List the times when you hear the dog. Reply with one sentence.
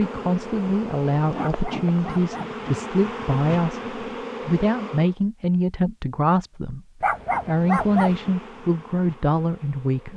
The dog can be heard from 1.4 to 2.5 s and from 7.0 to 8.2 s.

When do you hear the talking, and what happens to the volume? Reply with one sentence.
The talking can be heard from 0.0 to 6.8 s, at a steady volume; and briefly from 7.5 to 10.1 s.